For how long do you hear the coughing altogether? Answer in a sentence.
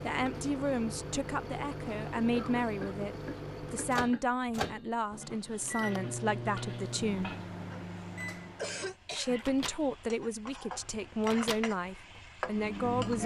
The coughing can be heard for 3 seconds in total.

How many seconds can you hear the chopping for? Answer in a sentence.
The chopping can't be heard in this clip.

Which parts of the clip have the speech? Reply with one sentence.
You can hear the speech from 0.0 to 7.3 s and from 9.1 to 13.2 s.